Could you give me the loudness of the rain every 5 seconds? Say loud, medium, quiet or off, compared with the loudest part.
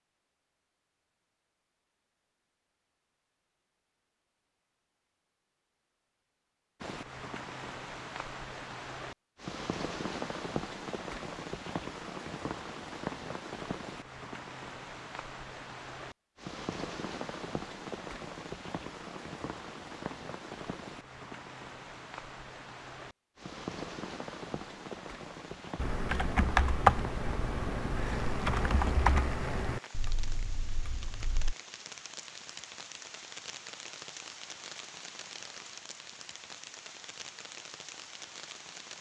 off, loud, loud, loud, loud, medium, medium, medium.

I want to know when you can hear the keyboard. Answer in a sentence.
The keyboard can be heard from 25.8 to 31.6 s.